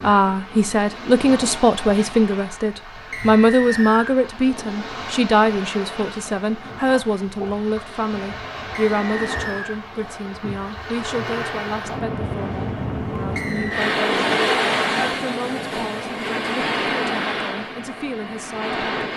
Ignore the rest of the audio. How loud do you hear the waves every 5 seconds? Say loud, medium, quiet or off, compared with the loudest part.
medium, medium, loud, loud.